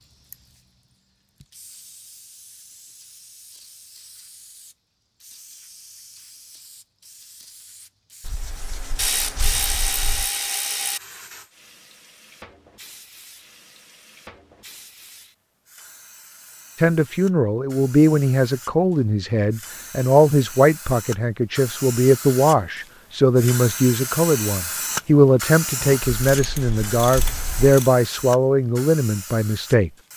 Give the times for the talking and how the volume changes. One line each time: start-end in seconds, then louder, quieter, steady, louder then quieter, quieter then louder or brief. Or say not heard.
16.8-30.1 steady.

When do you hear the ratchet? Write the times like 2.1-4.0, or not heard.
8.9-11.0, 25.8-27.9.